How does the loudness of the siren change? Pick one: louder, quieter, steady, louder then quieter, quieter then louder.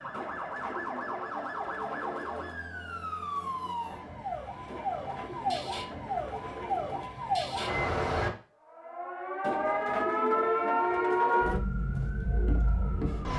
louder.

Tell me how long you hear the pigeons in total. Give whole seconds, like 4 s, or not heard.
7 s.